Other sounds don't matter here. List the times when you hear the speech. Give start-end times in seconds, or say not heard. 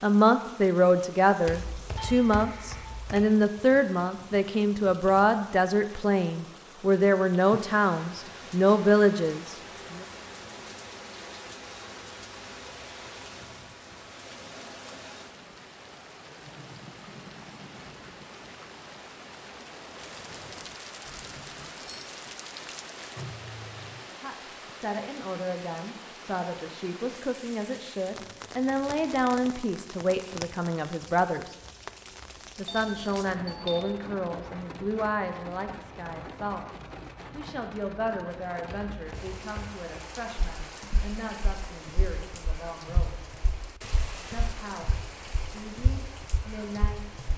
0.0-10.1, 24.1-31.6, 32.5-36.6, 37.3-43.1, 44.3-47.3.